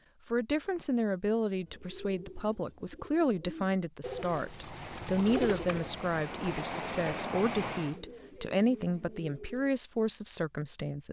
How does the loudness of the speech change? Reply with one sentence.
The loudness of the speech stays about the same.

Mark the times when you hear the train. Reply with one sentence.
The train can be heard from 4.5 to 8.0 s.